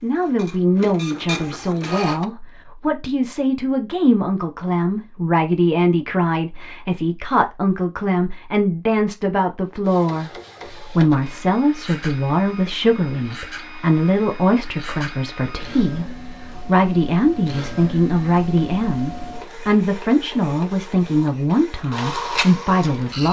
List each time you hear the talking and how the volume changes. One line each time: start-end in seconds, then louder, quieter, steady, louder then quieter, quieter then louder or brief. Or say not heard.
0.0-23.2 steady.